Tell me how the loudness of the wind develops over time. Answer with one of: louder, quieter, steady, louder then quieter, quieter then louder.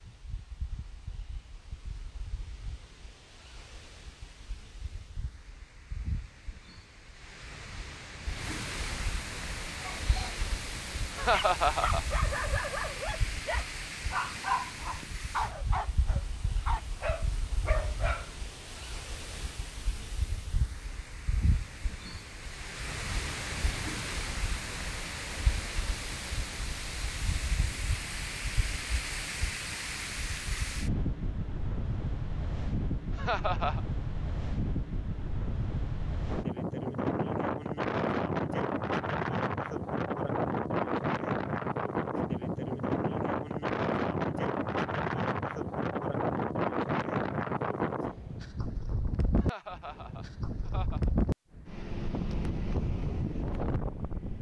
louder.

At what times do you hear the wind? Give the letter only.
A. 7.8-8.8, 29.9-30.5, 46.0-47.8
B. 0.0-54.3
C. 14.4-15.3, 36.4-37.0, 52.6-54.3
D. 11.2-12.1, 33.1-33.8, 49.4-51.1
B.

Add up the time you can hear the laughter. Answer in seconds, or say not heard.
3 s.